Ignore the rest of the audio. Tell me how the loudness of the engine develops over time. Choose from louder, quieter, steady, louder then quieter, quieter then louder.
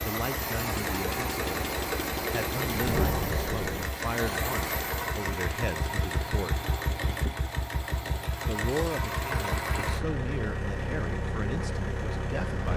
steady.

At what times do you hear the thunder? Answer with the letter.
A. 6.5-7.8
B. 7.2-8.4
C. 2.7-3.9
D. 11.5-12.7
C.